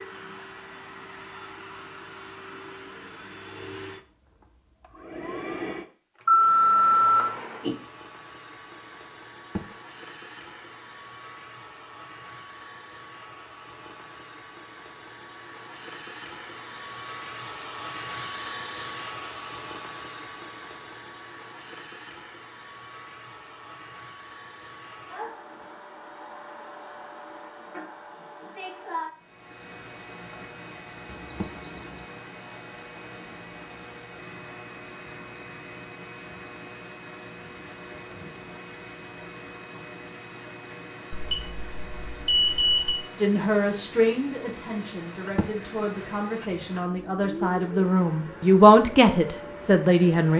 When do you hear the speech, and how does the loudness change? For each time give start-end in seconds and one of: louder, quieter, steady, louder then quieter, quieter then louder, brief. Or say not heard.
43.1-50.3 quieter then louder.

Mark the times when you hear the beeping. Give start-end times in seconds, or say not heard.
6.2-7.8, 31.1-32.1, 41.1-43.0.